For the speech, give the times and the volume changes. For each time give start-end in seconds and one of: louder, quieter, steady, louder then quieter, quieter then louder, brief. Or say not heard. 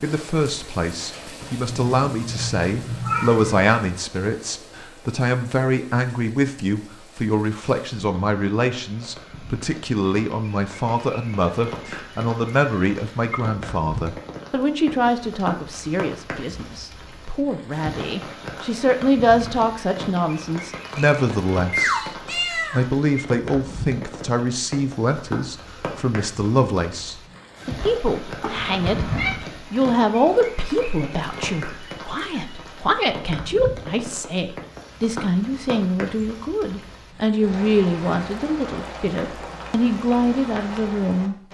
0.0-41.4 steady.